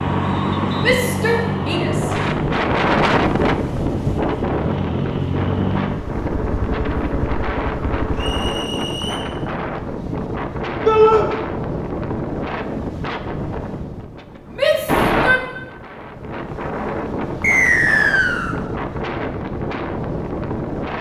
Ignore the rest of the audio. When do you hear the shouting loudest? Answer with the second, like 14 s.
11 s.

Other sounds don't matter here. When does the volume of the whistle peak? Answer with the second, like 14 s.
18 s.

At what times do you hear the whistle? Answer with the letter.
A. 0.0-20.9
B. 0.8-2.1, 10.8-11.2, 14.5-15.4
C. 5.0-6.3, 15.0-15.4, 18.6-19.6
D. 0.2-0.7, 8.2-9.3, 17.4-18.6
D.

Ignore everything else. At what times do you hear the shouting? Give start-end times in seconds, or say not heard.
0.8-2.1, 10.8-11.2, 14.5-15.4.